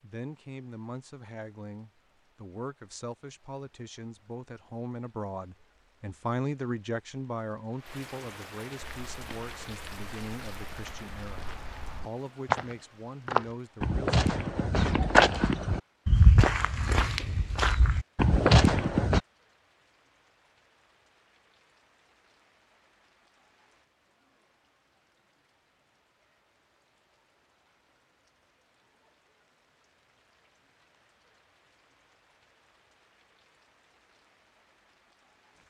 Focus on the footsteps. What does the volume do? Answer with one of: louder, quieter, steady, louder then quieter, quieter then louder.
louder.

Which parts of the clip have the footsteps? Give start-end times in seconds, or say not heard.
8.8-19.2.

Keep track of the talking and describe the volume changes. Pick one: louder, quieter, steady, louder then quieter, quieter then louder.
louder then quieter.